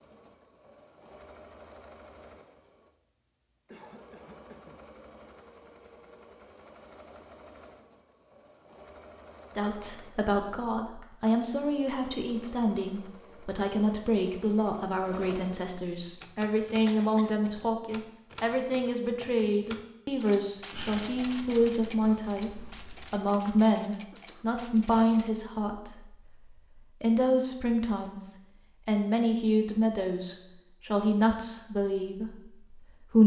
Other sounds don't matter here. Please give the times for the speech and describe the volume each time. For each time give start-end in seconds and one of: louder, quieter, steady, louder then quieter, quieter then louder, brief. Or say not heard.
9.6-33.2 steady.